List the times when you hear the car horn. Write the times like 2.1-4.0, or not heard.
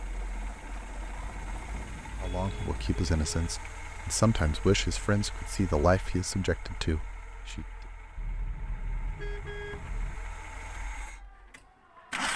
1.1-3.6, 8.2-10.2.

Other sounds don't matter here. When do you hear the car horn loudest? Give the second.
10 s.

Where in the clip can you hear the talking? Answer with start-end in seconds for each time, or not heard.
2.2-7.7.